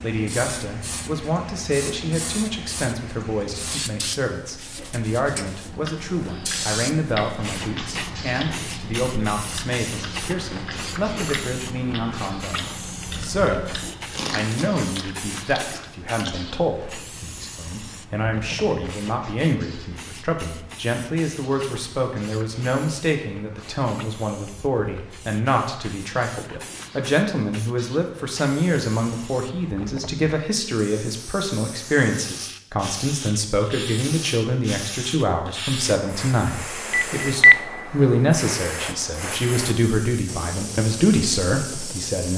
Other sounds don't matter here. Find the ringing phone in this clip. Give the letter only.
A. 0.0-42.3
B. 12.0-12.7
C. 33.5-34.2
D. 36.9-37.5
D.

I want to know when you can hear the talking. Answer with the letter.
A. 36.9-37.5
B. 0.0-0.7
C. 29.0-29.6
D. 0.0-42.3
D.